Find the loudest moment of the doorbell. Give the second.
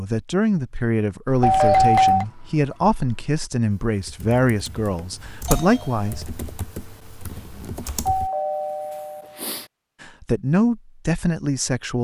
2 s.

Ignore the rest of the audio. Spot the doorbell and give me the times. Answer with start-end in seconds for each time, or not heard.
1.4-2.2, 4.9-6.2, 8.1-9.7.